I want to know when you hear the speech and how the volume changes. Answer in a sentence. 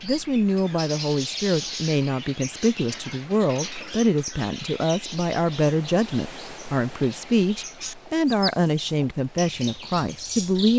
You can hear the speech from 0.0 to 10.7 s, at a steady volume.